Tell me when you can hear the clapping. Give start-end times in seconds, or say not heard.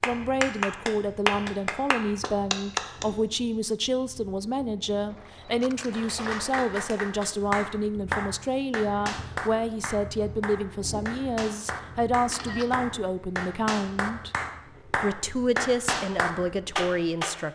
0.0-3.0, 5.8-17.4.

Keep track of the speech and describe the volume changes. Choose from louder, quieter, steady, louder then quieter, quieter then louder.
steady.